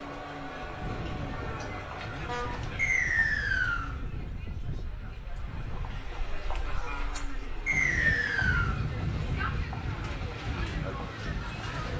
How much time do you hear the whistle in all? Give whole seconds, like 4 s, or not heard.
2 s.